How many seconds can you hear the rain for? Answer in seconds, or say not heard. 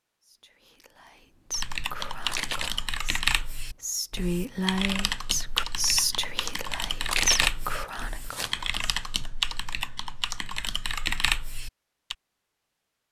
not heard.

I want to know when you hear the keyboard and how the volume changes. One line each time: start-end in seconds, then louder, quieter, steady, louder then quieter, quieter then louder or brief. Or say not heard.
1.5-12.2 steady.